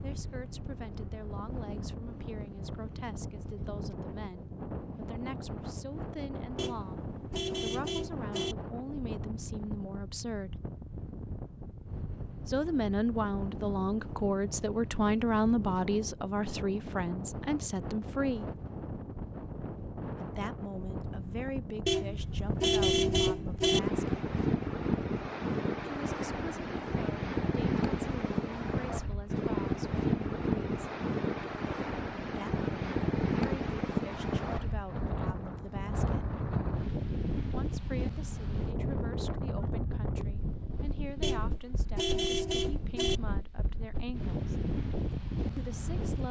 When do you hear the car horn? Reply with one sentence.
The car horn can be heard from 6.5 to 8.6 s, from 21.9 to 23.8 s and from 41.2 to 43.2 s.